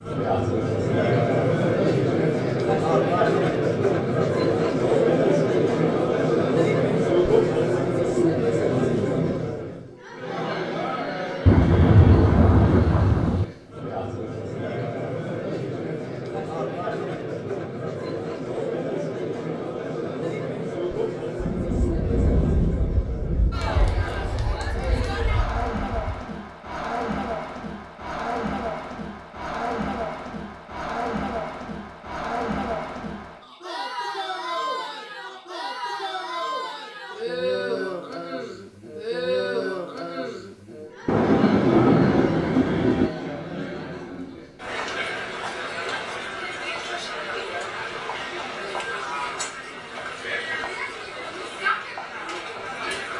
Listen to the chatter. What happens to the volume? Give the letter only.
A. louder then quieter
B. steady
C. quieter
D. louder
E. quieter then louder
C.